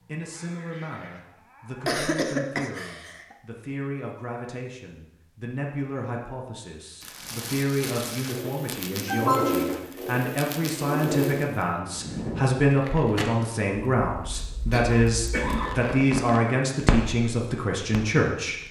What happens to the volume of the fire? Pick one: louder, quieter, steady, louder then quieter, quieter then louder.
quieter then louder.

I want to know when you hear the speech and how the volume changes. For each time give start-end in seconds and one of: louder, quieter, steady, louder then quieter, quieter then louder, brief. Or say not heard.
0.1-18.6 louder.